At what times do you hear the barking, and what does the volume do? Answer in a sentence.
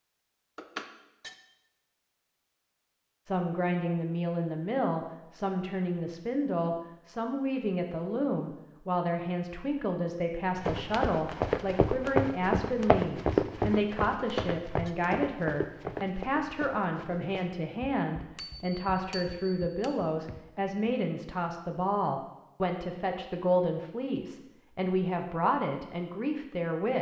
You can't hear the barking here.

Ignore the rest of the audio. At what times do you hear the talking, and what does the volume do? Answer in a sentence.
You can hear the talking from 3.2 to 26.9 s, at a steady volume.